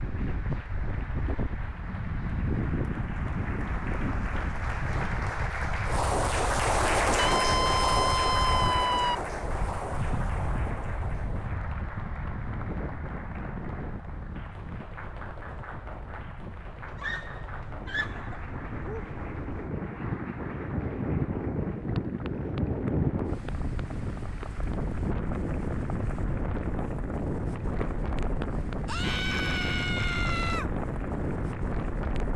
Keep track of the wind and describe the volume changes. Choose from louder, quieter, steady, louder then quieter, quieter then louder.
quieter then louder.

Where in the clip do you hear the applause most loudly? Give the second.
7 s.